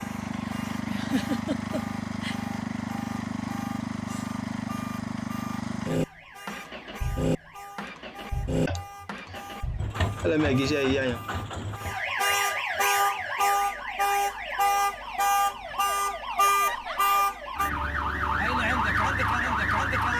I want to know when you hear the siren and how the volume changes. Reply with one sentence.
You can hear the siren from 0.0 to 20.1 s, getting louder.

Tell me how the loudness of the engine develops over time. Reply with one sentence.
The volume of the engine goes down.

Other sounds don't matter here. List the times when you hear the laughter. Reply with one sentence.
You can hear the laughter from 0.8 to 2.4 s, from 8.7 to 9.4 s, from 10.2 to 11.2 s and from 16.6 to 17.1 s.